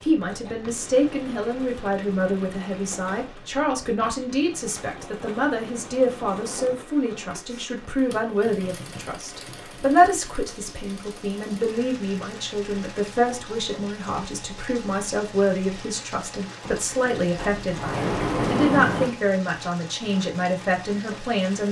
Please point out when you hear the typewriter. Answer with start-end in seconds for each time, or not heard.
not heard.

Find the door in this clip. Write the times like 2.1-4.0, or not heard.
16.6-19.1.